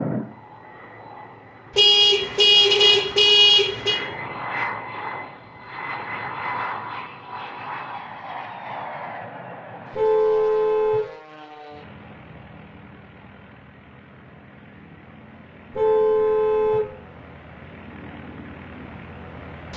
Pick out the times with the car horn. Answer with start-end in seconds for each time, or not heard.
1.8-4.0, 9.9-11.1, 15.7-16.9.